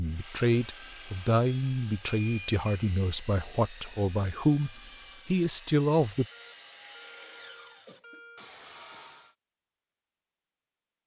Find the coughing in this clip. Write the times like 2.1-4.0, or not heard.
7.8-9.1.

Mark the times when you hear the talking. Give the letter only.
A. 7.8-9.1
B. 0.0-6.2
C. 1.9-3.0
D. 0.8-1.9
B.